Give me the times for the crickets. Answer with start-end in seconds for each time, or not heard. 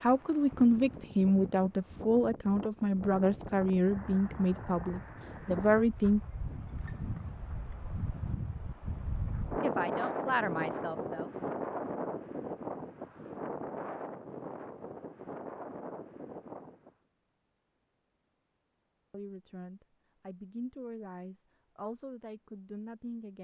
not heard.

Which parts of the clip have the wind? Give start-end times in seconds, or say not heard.
0.0-16.9.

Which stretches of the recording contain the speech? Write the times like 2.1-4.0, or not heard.
0.0-6.2, 9.6-11.3, 19.1-23.3.